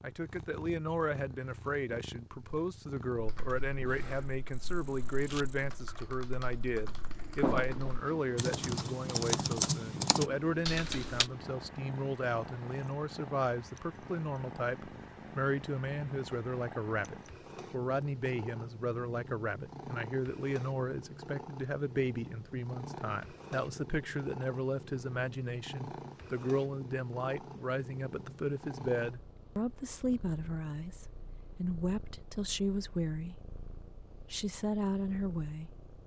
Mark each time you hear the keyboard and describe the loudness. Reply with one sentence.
You can hear the keyboard from 3.1 to 11.3 s, getting louder.